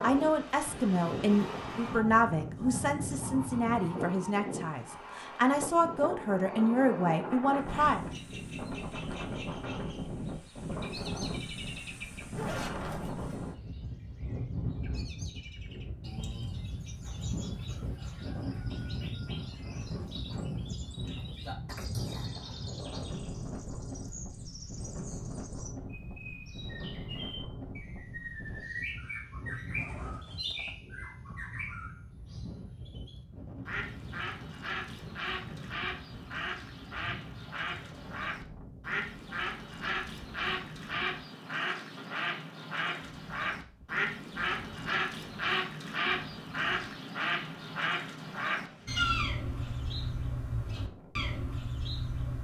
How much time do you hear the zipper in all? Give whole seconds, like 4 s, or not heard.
3 s.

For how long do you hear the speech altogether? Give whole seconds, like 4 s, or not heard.
8 s.